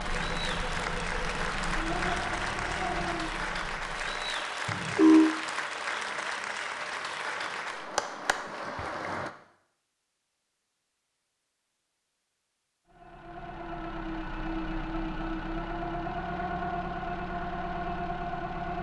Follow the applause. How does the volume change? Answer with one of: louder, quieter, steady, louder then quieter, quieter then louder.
steady.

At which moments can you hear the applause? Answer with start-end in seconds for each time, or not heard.
0.0-9.3.